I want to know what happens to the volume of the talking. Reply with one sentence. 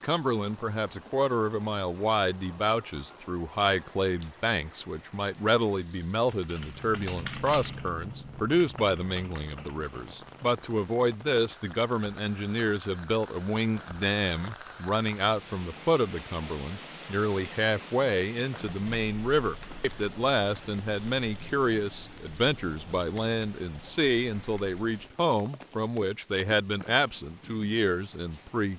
The loudness of the talking stays about the same.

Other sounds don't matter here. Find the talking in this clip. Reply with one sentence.
The talking can be heard from 0.0 to 28.7 s.